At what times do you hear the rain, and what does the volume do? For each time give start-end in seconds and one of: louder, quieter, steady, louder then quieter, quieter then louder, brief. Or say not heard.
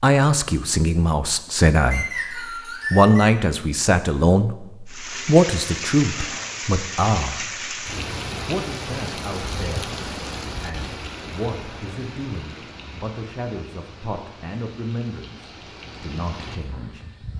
4.8-17.3 quieter.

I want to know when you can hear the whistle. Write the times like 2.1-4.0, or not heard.
1.9-3.3.